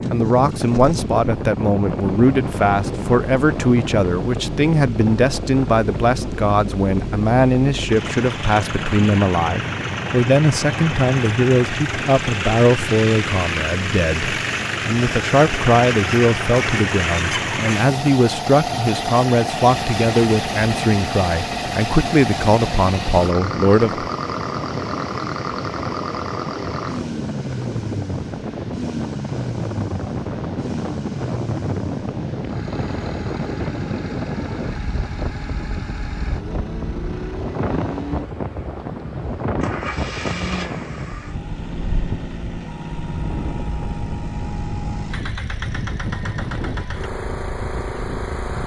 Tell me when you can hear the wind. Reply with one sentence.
You can hear the wind from 0.0 to 48.6 s.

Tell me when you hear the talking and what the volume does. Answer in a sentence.
You can hear the talking from 0.1 to 24.1 s, at a steady volume.